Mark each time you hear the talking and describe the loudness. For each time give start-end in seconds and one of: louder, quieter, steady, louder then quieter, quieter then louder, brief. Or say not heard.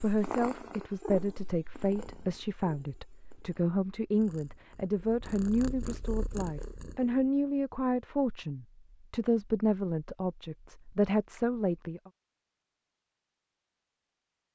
0.0-12.1 steady.